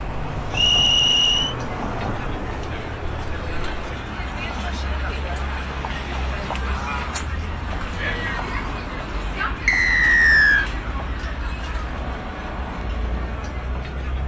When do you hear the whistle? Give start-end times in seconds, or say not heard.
0.5-1.6, 9.7-10.7.